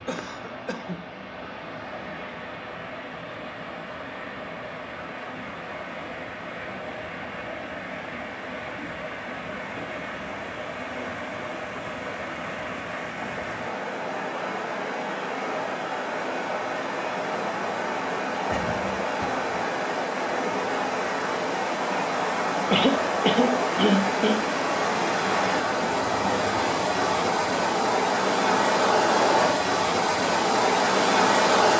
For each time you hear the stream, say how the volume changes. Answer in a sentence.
The stream can be heard from 0.0 to 31.7 s, getting louder.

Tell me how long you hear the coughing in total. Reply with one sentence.
The coughing can be heard for 4 seconds in total.